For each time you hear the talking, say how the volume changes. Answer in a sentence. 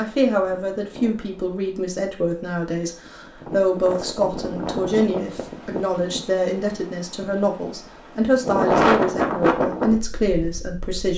You can hear the talking from 0.0 to 11.1 s, at a steady volume.